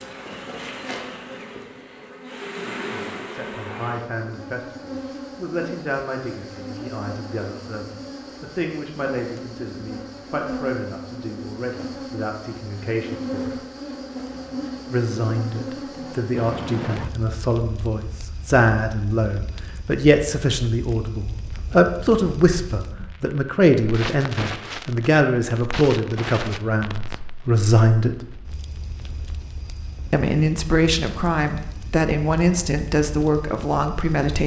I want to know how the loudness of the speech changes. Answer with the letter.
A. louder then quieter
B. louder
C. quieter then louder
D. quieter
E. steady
B.